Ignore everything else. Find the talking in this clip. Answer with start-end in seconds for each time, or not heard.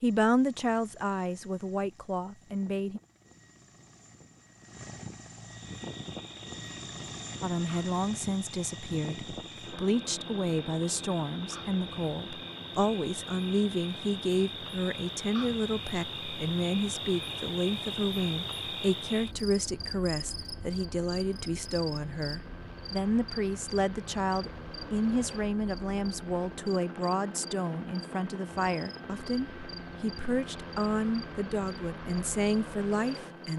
0.0-3.0, 7.4-33.5.